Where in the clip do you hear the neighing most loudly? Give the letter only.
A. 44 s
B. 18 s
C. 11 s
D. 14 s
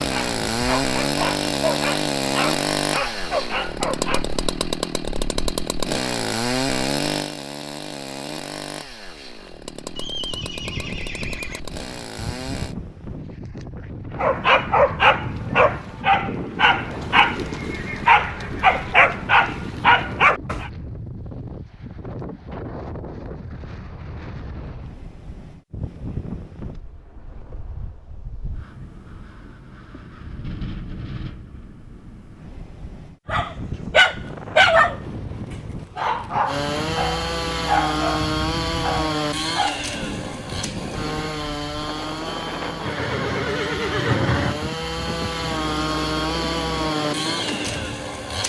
A.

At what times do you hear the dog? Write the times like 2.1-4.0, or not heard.
0.0-4.4, 14.2-20.7, 33.3-35.0, 36.0-39.8.